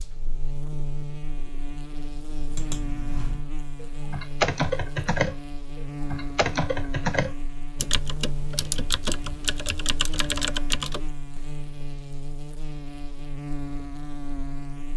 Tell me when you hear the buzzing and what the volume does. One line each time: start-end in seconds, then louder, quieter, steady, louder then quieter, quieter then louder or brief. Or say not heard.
0.0-14.9 steady.